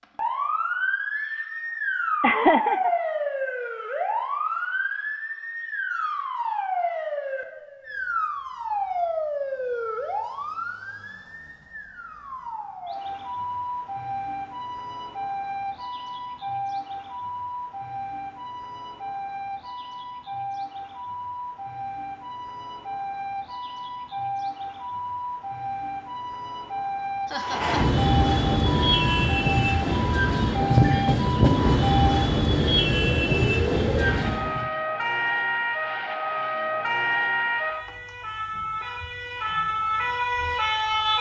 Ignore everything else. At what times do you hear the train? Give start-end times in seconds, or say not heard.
27.4-34.7.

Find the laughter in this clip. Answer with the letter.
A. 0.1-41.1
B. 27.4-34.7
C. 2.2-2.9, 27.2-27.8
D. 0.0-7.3
C.